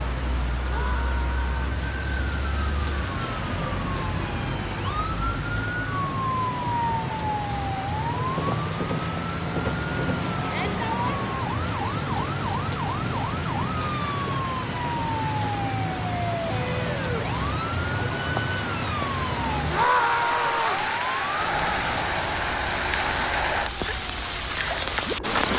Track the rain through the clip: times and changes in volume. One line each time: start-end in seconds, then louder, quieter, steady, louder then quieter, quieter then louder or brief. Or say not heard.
0.0-25.5 louder.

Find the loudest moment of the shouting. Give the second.
20 s.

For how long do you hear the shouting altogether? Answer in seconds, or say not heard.
3 s.